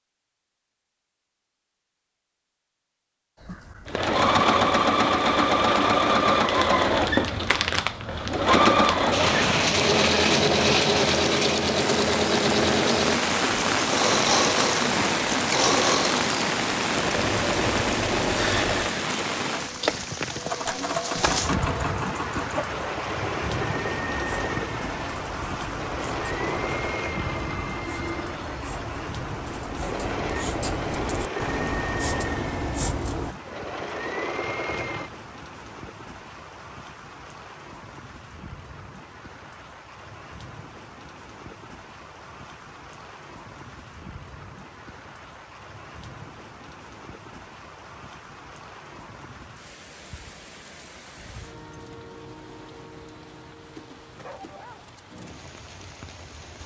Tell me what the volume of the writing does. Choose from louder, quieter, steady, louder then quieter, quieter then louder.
louder.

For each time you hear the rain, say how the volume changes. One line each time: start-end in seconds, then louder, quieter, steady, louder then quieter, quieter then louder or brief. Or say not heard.
9.1-56.6 quieter.